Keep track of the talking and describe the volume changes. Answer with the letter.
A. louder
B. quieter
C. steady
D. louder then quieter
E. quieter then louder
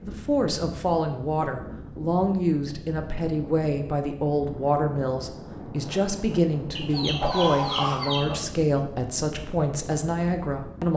C.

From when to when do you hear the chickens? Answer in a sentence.
You can hear the chickens from 6.8 to 8.3 s.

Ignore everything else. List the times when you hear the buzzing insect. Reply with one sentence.
The buzzing insect can't be heard in this clip.